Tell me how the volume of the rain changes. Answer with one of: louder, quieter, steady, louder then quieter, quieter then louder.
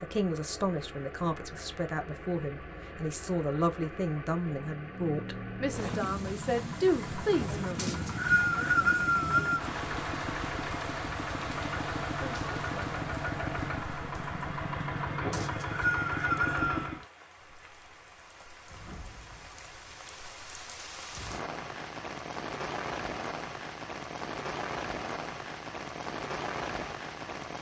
quieter then louder.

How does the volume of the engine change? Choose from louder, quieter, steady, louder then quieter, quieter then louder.
louder.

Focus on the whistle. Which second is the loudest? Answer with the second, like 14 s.
9 s.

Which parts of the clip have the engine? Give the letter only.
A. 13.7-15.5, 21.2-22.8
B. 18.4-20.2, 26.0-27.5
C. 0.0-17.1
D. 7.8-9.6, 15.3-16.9
C.